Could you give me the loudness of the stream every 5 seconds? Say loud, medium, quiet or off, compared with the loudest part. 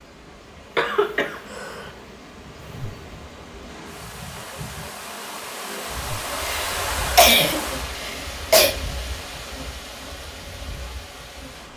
medium, loud, medium.